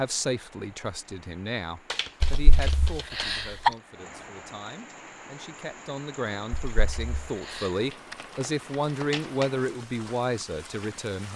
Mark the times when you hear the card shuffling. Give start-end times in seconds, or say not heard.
1.9-3.6, 7.9-9.6.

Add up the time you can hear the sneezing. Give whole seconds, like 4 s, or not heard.
3 s.